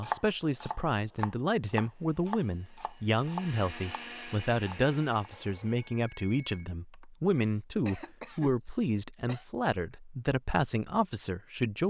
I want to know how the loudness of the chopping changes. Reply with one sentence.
The volume of the chopping goes up, then down.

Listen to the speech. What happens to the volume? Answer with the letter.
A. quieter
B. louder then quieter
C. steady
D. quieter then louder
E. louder
C.